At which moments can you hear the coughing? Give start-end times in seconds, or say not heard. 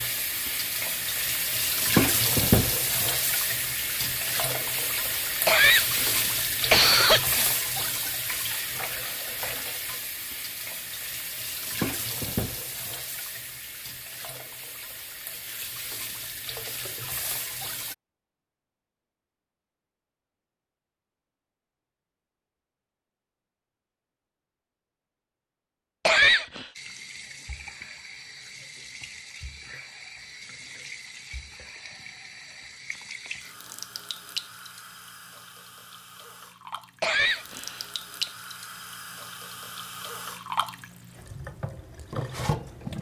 5.5-7.5, 26.1-26.6, 37.0-37.9.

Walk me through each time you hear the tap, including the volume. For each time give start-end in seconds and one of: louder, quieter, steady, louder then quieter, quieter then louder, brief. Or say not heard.
0.0-17.9 quieter
26.8-42.9 louder.